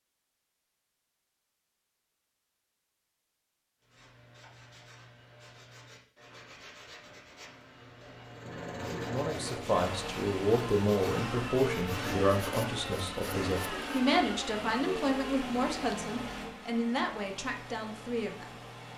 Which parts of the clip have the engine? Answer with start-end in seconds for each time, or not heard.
8.2-18.9.